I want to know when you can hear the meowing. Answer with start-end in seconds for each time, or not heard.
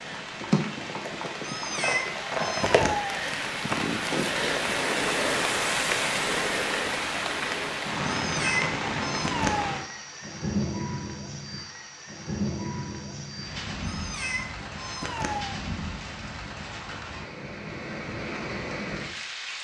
1.4-3.2, 8.1-9.8, 13.8-15.6.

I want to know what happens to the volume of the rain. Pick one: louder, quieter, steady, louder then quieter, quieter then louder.
quieter.